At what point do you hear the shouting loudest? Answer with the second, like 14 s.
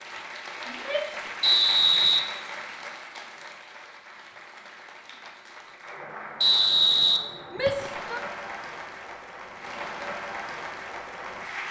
8 s.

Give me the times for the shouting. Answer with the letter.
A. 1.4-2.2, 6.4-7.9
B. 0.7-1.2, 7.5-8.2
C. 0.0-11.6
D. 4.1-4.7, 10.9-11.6
B.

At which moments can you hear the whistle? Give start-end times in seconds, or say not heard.
1.4-2.2, 6.4-7.9.